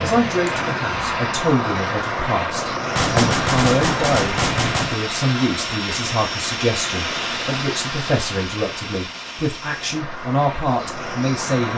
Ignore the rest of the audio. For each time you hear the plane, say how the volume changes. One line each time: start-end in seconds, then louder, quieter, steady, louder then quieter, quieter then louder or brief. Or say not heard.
0.0-11.7 quieter.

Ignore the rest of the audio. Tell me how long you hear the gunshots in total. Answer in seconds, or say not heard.
2 s.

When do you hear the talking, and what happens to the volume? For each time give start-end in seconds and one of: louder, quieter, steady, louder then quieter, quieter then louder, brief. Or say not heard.
0.0-11.7 steady.